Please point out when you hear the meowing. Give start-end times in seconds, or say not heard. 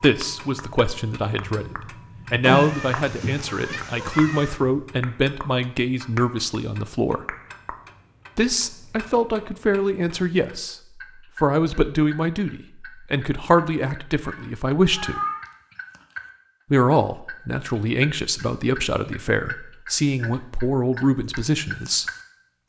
2.4-4.6, 14.2-15.4.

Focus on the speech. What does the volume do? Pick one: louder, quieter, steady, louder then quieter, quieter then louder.
steady.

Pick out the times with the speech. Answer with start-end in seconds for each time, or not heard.
0.0-7.2, 8.3-15.2, 16.7-22.1.